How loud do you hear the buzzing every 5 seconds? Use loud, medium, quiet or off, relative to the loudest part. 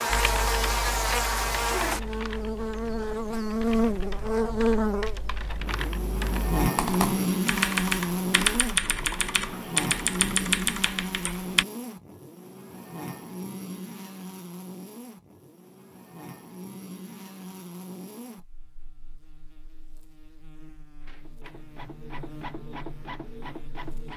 loud, loud, medium, quiet, quiet.